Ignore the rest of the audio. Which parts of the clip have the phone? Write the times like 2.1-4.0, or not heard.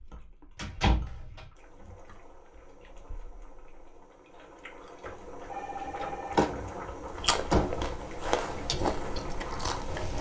5.5-6.5.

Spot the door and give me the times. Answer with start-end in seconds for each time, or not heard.
0.6-1.4, 6.3-8.0.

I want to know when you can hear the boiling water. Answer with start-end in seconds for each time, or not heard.
1.6-10.1.